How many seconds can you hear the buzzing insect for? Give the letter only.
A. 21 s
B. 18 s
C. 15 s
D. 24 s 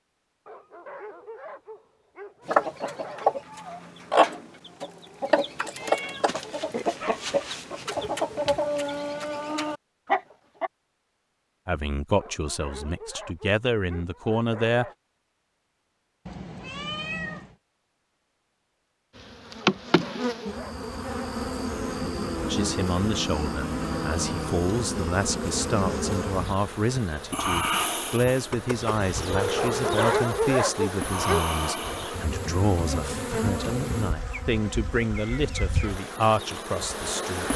B.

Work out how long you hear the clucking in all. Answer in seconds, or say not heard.
8 s.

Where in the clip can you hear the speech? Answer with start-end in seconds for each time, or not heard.
11.7-14.8, 22.4-37.5.